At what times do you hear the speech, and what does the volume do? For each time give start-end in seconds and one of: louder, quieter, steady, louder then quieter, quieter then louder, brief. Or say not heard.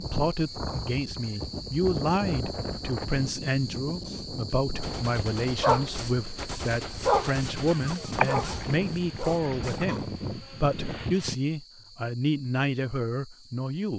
0.0-13.9 steady.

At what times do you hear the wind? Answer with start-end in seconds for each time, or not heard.
0.0-11.3.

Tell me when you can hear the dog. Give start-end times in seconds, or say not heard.
4.8-10.2.